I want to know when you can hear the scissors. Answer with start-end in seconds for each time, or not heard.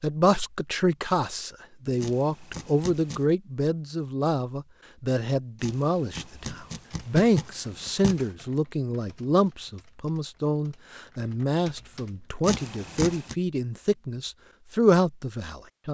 2.0-3.2, 5.6-8.3, 12.4-13.3.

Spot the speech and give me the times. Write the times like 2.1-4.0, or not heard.
0.0-15.8.